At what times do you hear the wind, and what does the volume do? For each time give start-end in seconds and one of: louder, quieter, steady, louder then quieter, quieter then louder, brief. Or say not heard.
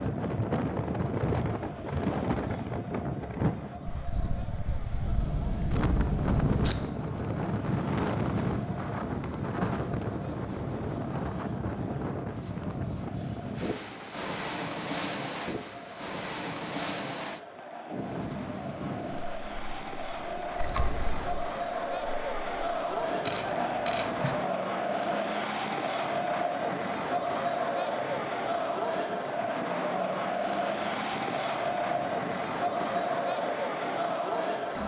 0.0-34.8 quieter.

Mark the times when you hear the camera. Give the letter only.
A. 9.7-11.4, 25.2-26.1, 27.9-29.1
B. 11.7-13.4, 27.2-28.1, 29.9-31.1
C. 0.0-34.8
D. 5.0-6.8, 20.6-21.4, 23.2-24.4
D.